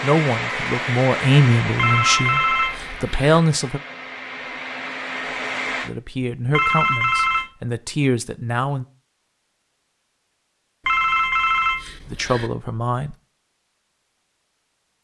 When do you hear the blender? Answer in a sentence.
You can hear the blender from 0.0 to 5.9 s.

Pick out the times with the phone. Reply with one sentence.
You can hear the phone from 1.8 to 3.4 s, from 6.5 to 7.5 s and from 10.8 to 12.5 s.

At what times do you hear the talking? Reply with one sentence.
You can hear the talking from 0.0 to 3.8 s, from 5.8 to 8.8 s and from 12.1 to 13.2 s.